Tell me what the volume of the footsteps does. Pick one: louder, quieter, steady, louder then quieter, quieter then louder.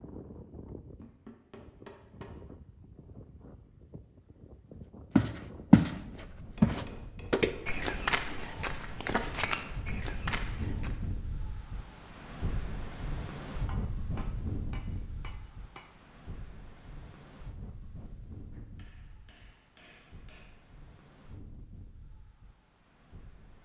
quieter.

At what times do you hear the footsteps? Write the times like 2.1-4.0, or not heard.
5.2-11.1.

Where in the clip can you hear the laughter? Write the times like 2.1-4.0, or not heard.
not heard.